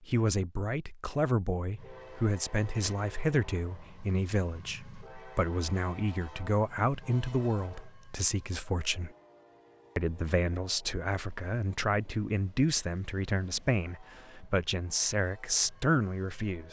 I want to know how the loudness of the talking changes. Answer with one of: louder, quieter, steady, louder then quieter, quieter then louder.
steady.